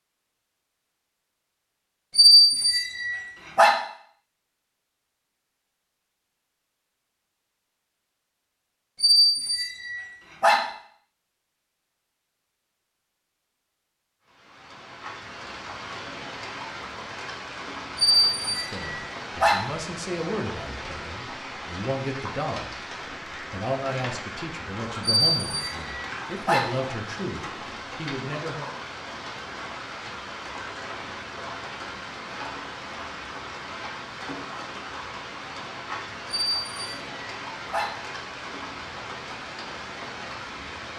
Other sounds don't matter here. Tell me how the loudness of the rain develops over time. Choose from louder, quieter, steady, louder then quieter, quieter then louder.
steady.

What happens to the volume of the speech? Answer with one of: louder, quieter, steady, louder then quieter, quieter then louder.
steady.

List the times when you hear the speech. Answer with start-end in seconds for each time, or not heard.
18.5-22.7, 23.4-28.8.